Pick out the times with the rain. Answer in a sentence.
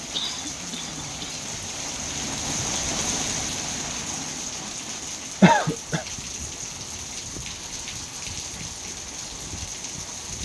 The rain can be heard from 0.0 to 10.4 s.